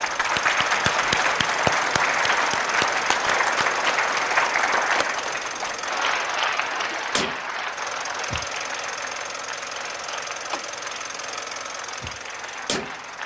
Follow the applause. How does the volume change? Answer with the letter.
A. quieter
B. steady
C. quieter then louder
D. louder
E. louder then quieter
A.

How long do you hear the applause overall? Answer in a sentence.
The applause can be heard for 13 seconds in total.